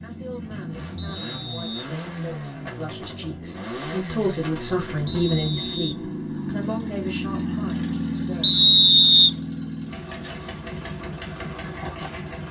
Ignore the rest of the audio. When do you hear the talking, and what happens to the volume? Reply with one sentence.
You can hear the talking from 0.0 to 8.5 s, getting louder then quieter.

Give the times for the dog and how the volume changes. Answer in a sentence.
The dog can't be heard in this clip.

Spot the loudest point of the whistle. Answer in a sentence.
The loudest moment of the whistle is at 9 seconds.